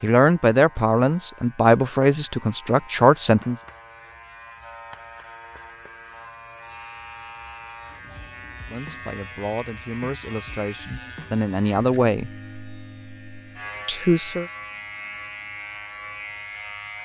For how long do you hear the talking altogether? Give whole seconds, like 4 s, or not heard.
8 s.